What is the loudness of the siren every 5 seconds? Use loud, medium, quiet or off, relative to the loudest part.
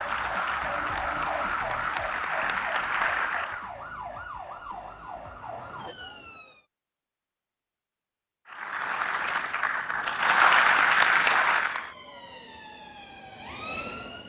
loud, medium, medium.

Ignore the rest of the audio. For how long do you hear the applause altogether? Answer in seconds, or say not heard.
7 s.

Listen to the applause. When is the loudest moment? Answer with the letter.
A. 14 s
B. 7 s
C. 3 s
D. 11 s
D.